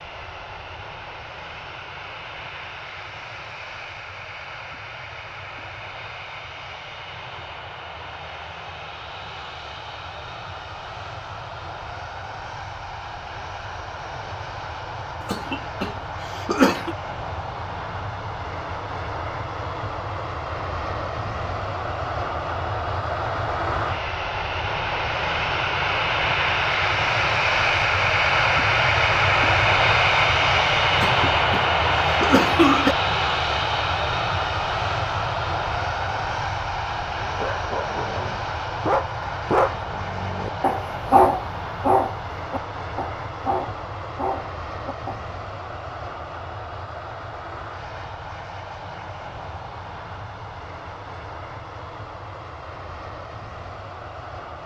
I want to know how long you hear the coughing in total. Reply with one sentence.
The coughing can be heard for 4 seconds in total.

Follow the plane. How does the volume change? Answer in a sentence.
The loudness of the plane goes up, then down.